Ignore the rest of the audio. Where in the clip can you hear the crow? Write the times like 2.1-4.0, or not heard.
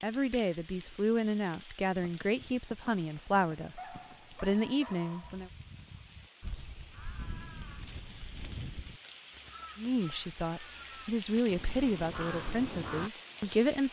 6.4-13.1.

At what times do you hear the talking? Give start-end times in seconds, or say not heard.
0.0-5.5, 9.8-13.8.